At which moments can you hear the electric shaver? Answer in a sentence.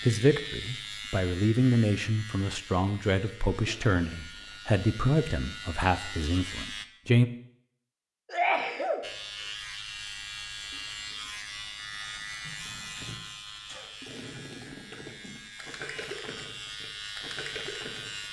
You can hear the electric shaver from 0.0 to 6.8 s and from 9.0 to 18.2 s.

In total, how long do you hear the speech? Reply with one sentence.
The speech can be heard for 7 seconds in total.